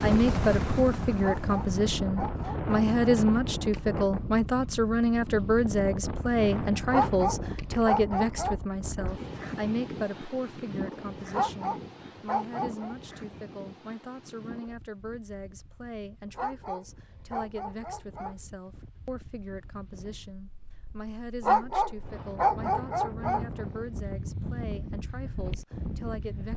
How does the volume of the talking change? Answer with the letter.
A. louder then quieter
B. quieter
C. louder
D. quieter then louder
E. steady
B.